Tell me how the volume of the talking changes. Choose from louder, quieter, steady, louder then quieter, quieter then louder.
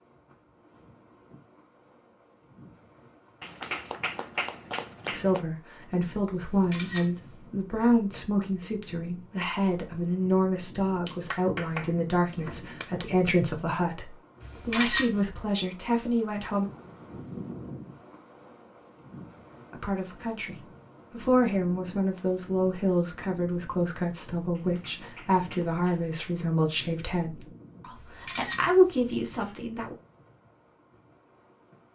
steady.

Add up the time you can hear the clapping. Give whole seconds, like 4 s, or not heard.
6 s.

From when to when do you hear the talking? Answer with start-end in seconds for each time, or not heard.
5.1-16.7, 19.7-29.9.